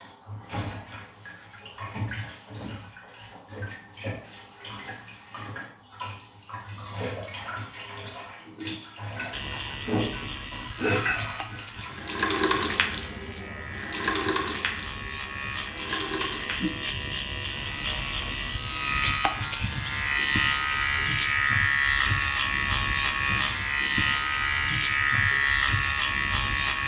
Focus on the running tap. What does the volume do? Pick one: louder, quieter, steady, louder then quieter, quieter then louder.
louder then quieter.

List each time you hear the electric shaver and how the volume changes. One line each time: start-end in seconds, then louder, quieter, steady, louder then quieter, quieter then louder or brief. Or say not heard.
9.3-26.8 louder.